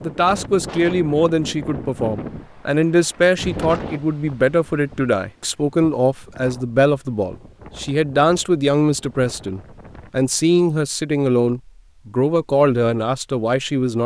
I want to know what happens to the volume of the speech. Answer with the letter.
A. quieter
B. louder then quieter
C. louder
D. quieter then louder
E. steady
E.